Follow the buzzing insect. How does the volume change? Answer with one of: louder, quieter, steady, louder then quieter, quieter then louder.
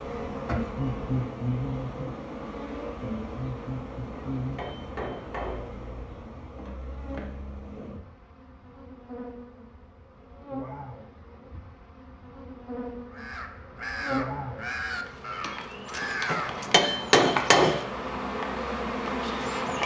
quieter then louder.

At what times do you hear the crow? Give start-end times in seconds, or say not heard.
13.1-17.1.